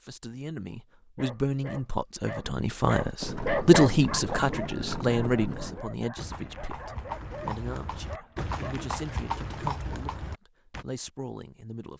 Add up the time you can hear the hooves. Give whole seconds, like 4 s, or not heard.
8 s.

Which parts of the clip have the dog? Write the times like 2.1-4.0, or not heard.
1.1-8.9.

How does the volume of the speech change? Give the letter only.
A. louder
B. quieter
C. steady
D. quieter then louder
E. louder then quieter
E.